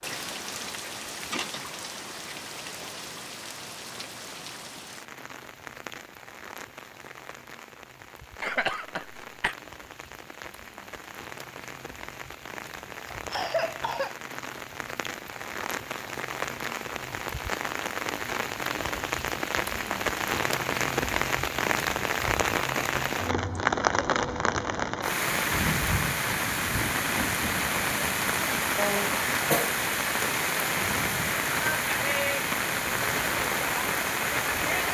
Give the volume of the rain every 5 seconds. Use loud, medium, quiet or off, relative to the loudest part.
medium, quiet, quiet, medium, loud, loud, loud.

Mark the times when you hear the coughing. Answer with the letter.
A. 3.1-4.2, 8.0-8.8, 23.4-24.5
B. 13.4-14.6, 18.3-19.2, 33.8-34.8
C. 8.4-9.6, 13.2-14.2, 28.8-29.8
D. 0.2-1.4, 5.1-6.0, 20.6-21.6
C.